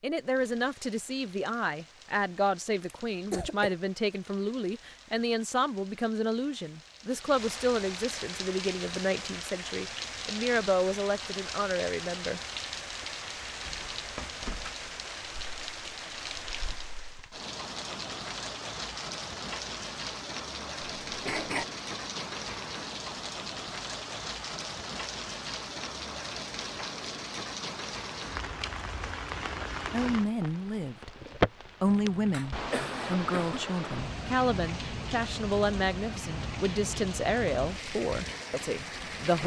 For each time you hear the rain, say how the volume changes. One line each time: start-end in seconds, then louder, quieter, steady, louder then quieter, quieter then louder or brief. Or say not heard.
0.0-39.4 louder.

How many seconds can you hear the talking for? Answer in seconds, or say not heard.
21 s.